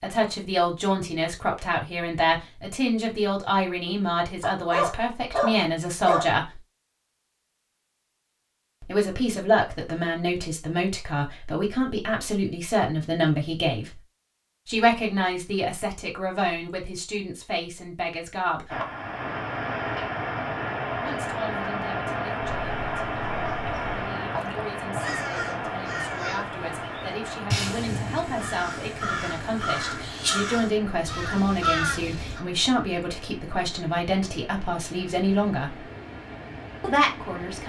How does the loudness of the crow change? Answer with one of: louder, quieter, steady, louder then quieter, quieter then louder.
louder.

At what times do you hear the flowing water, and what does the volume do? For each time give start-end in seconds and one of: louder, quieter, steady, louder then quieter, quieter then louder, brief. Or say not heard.
18.6-37.6 quieter.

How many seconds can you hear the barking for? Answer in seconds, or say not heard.
2 s.